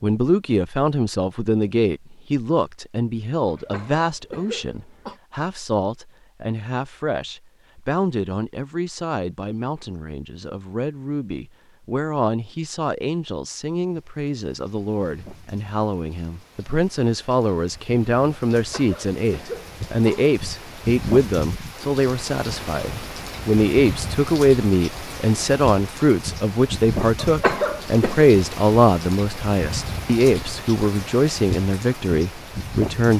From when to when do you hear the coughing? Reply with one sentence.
The coughing can be heard from 3.5 to 5.2 s, from 18.6 to 20.3 s and from 27.1 to 28.2 s.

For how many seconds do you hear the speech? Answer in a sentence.
You can hear the speech for 33 seconds altogether.